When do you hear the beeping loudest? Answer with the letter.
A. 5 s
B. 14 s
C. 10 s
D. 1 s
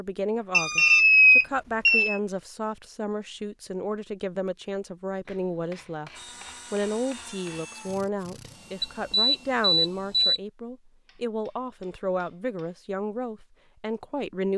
D.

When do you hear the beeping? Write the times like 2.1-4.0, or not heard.
0.5-2.2, 8.8-10.4.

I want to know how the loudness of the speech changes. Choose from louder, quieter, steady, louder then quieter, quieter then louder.
steady.